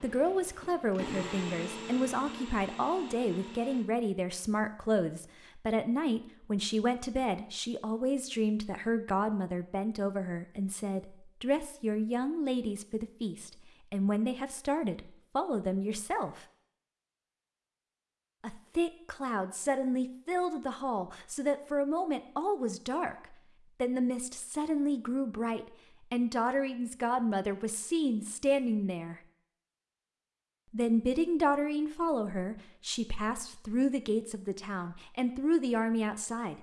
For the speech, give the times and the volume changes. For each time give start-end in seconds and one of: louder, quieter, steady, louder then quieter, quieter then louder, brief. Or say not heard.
0.0-16.4 steady
18.4-29.2 steady
30.7-36.5 quieter then louder.